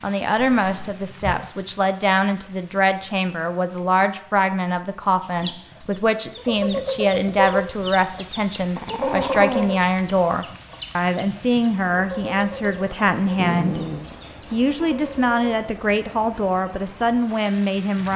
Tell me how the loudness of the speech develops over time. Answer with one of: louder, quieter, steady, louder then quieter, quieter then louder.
steady.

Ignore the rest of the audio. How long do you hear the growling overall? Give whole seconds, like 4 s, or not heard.
3 s.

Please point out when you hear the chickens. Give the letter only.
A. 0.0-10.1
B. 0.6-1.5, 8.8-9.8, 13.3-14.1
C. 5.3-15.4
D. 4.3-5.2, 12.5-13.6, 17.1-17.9
C.